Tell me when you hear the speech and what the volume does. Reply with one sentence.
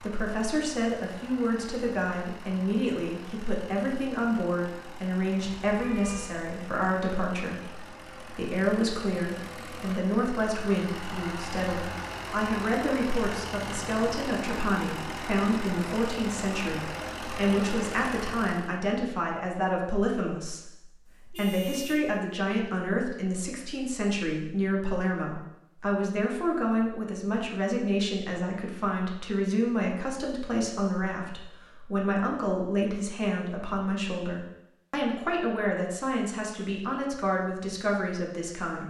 You can hear the speech from 0.0 to 38.8 s, at a steady volume.